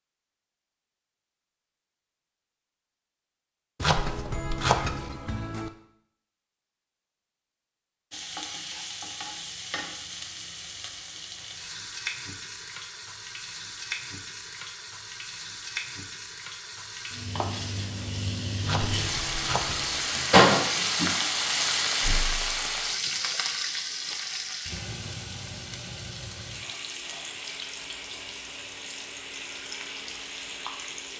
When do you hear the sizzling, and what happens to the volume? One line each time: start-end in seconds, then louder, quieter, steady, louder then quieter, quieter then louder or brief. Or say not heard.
8.1-31.1 louder then quieter.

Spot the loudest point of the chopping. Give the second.
5 s.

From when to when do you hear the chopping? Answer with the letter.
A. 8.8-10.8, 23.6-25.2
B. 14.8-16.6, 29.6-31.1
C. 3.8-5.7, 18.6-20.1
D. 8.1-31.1
C.